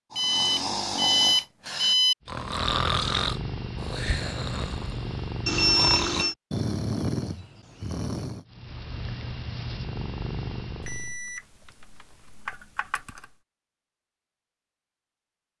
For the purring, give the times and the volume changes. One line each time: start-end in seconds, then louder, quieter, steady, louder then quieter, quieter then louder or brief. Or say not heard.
2.2-6.3 steady
8.4-11.2 brief.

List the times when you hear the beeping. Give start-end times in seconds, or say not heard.
0.1-2.1, 5.5-6.3, 10.8-13.2.